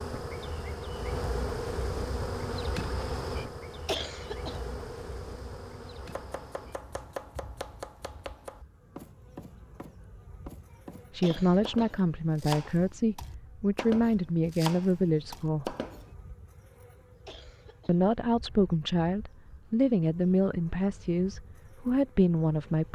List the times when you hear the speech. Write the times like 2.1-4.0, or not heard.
11.1-15.8, 17.9-22.9.